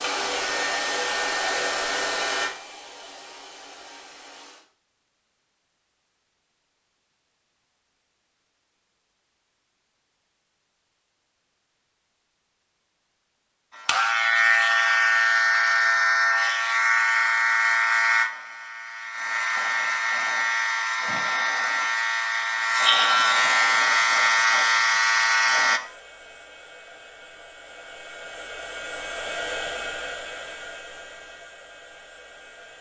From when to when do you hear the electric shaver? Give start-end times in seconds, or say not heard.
0.2-2.5, 13.8-25.8.